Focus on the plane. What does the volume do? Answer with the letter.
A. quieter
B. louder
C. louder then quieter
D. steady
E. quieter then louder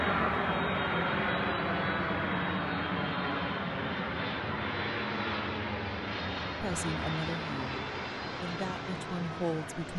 A.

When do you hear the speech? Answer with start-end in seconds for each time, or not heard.
6.6-9.9.